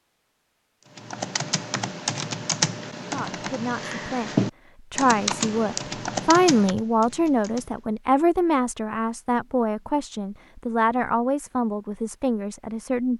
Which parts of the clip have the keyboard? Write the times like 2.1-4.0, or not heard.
0.9-7.9.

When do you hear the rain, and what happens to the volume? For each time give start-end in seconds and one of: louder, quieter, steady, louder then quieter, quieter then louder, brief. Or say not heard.
not heard.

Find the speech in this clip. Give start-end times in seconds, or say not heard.
3.1-13.1.